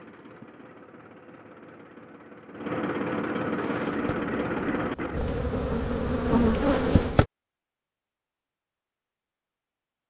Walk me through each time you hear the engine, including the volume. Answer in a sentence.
The engine can be heard from 0.0 to 5.2 s, getting louder.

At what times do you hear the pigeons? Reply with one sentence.
You can't hear the pigeons here.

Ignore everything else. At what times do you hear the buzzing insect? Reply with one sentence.
The buzzing insect can be heard from 3.5 to 7.2 s.